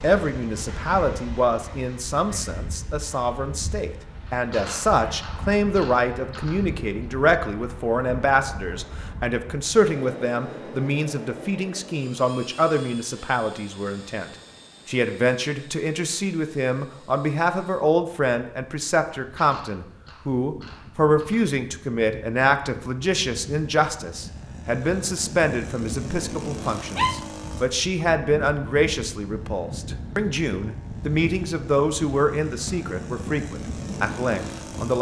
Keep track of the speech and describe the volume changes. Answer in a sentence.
The volume of the speech stays about the same.